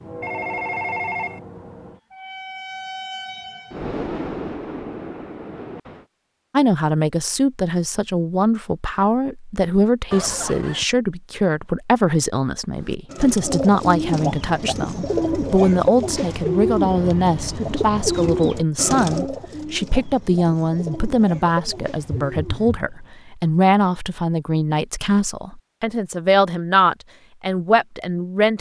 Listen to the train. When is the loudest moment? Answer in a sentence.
The volume of the train peaks at 4 seconds.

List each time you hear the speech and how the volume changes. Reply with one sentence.
The speech can be heard from 6.5 to 28.5 s, at a steady volume.